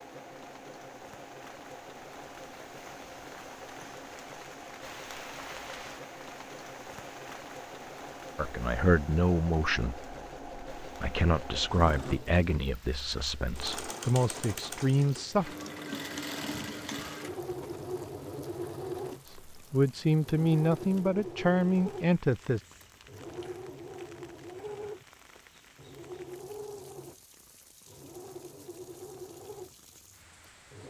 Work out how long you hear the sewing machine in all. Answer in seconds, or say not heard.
31 s.